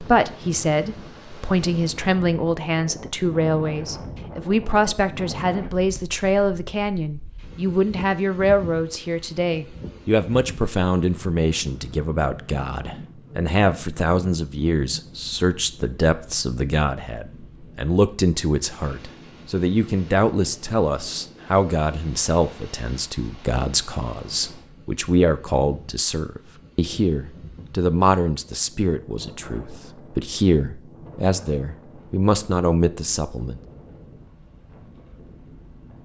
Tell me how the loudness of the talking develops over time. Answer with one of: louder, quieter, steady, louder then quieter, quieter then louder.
steady.